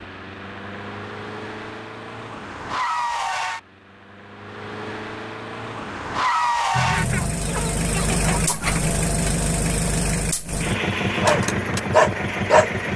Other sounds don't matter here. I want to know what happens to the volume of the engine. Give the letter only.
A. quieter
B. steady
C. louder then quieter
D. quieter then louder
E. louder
E.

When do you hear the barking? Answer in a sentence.
The barking can be heard from 11.2 to 12.7 s.